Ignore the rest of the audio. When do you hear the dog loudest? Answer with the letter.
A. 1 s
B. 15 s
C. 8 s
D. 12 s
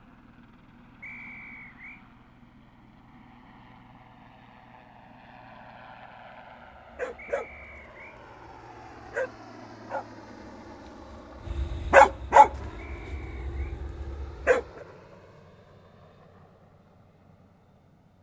D.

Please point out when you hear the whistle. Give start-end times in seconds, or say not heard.
1.0-2.0, 7.2-8.2, 12.8-13.8.